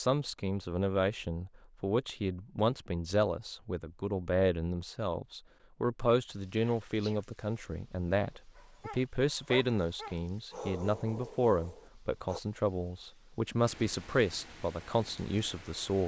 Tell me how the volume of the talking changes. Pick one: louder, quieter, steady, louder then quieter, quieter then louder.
steady.